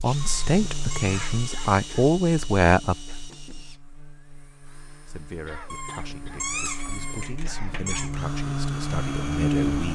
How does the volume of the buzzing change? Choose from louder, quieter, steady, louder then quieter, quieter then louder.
quieter then louder.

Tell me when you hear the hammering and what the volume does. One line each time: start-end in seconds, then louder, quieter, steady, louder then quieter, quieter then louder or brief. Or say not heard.
not heard.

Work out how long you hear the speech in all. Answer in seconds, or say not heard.
8 s.